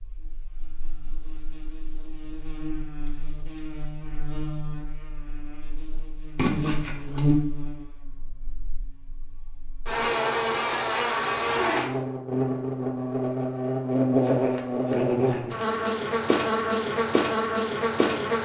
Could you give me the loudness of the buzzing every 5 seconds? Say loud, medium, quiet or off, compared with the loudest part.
quiet, medium, loud, loud.